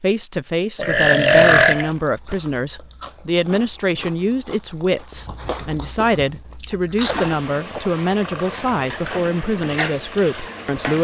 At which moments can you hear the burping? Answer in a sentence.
You can hear the burping from 0.8 to 2.4 s and from 7.7 to 8.6 s.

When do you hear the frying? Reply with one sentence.
The frying can be heard from 7.0 to 10.9 s.